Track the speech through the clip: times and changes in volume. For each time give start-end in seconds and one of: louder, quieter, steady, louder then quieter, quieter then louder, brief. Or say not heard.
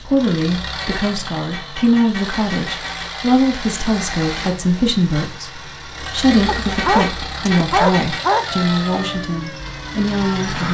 0.0-10.6 steady.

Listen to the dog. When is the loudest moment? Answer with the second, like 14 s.
8 s.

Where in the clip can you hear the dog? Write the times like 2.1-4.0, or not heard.
6.5-8.6.